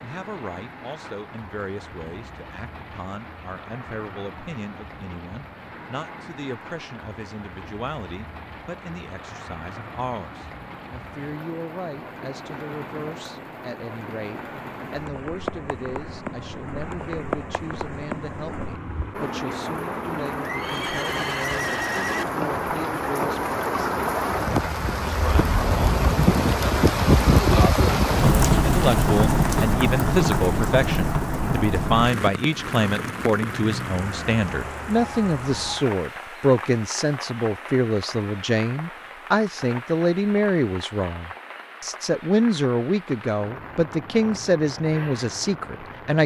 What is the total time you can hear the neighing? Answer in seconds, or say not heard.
2 s.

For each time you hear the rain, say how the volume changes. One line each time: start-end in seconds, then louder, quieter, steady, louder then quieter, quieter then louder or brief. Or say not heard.
0.0-46.2 louder then quieter.